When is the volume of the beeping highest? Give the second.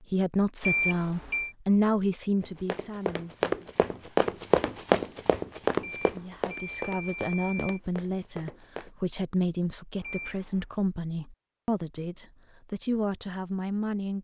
1 s.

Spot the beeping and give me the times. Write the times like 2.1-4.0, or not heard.
0.6-1.6, 5.8-7.8, 10.0-10.7.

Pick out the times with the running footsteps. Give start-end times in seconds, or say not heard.
2.4-8.9.